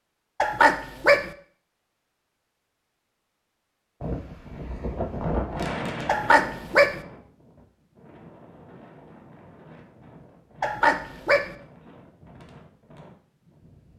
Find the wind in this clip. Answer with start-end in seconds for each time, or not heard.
4.0-13.9.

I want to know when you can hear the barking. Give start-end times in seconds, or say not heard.
0.4-1.3, 6.0-7.0, 10.6-11.6.